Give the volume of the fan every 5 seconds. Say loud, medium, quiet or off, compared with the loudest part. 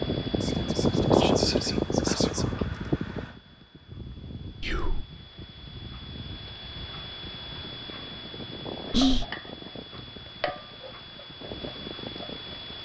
loud, quiet, quiet.